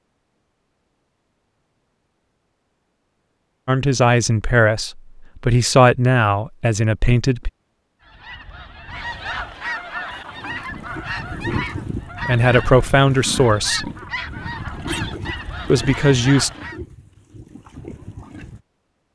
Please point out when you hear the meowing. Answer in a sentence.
You can't hear the meowing here.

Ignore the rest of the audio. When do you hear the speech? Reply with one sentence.
The speech can be heard from 3.6 to 7.5 s, from 12.2 to 13.9 s and from 15.7 to 16.5 s.